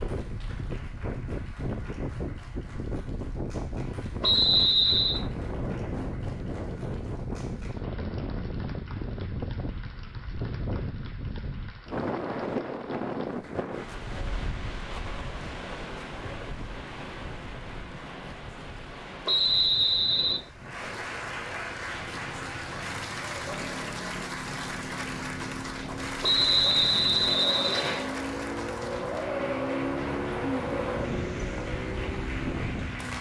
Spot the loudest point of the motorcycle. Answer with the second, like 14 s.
30 s.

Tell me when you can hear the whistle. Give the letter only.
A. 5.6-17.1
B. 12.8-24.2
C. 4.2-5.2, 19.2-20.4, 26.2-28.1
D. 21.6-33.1
C.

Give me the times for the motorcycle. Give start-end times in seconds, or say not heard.
21.6-33.1.